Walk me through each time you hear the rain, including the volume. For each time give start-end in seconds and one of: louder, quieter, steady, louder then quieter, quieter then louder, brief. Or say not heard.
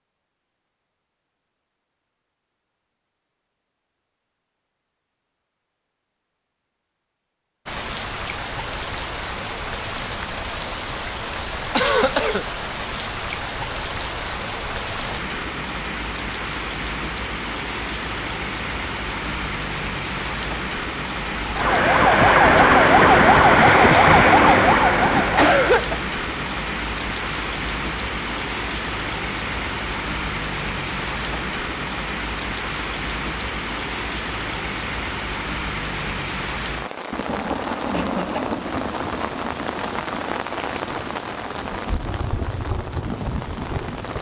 7.7-44.1 steady.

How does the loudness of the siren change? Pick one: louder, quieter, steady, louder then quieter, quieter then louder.
steady.